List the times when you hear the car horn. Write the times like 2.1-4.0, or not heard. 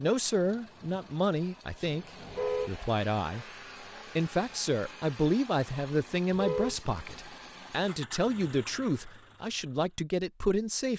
2.2-2.8, 6.3-6.8.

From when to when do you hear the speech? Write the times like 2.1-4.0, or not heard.
0.0-3.5, 4.2-10.9.